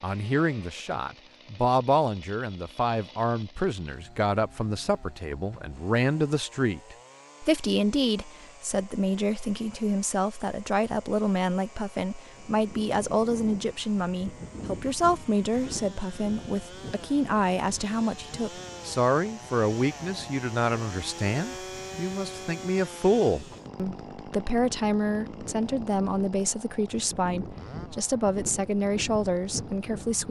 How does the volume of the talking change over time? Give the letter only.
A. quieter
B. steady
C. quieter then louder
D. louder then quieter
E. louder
B.